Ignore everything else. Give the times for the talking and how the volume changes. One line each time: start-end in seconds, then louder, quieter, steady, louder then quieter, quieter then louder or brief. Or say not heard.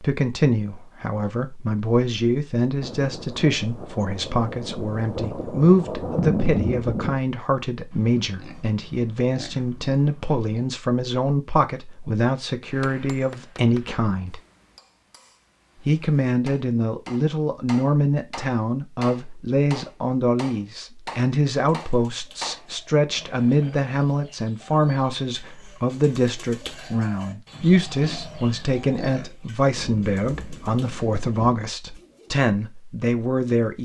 0.0-14.4 steady
15.8-33.8 steady.